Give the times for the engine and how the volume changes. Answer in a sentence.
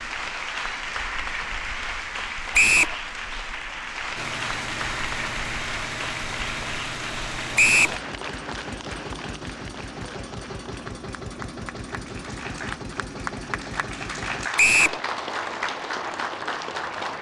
The engine can be heard from 4.2 to 14.5 s, at a steady volume.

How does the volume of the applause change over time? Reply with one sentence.
The volume of the applause goes down, then up.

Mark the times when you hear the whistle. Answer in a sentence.
You can hear the whistle from 2.5 to 3.0 s, from 7.5 to 8.0 s and from 14.6 to 15.0 s.